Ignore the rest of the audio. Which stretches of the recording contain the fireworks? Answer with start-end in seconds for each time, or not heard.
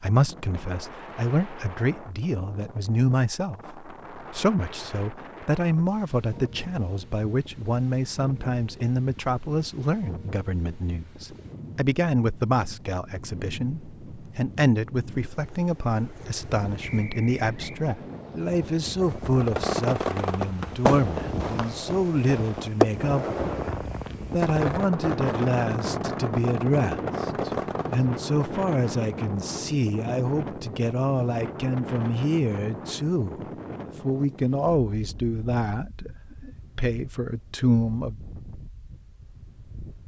19.3-28.1.